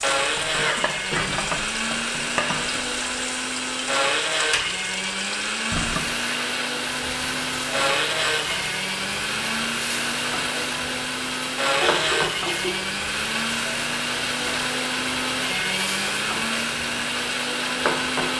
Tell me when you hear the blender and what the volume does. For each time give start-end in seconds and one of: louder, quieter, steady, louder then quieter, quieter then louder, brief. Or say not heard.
0.0-18.3 steady.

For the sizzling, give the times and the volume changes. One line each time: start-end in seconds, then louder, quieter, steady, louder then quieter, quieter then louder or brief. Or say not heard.
0.0-18.3 steady.